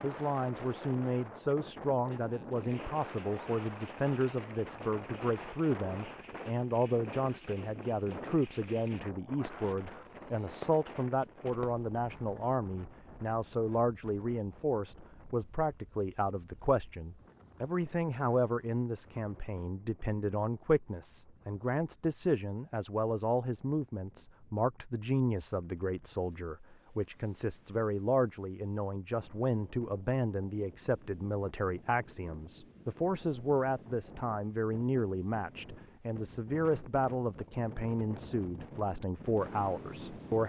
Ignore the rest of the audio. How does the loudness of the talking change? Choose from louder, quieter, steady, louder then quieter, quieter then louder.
steady.